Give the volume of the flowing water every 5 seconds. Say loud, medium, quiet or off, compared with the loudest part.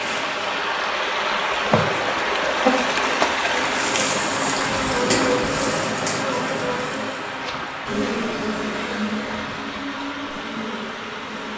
loud, medium, medium.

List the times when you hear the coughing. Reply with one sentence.
The coughing can't be heard in this clip.